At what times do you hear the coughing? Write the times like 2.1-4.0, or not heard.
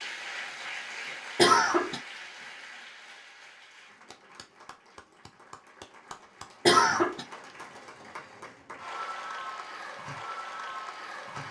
1.4-2.0, 6.7-7.2.